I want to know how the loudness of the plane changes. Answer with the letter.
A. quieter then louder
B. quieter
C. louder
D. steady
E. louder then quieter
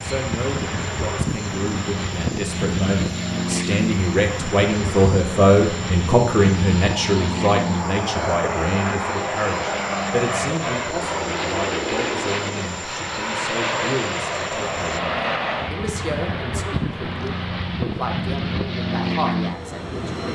D.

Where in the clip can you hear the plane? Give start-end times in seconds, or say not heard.
0.0-20.3.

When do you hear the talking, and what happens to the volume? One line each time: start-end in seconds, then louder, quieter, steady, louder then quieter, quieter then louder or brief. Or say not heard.
0.0-20.3 louder then quieter.